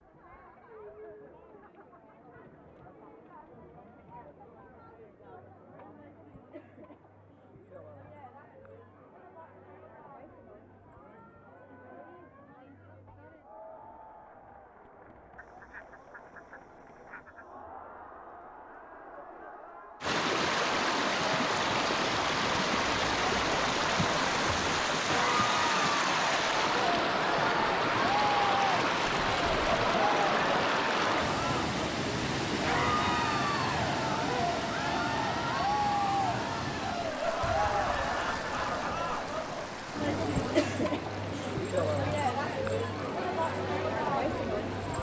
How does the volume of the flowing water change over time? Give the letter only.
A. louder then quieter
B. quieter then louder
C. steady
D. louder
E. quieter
E.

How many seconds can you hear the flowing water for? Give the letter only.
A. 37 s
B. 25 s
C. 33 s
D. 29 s
B.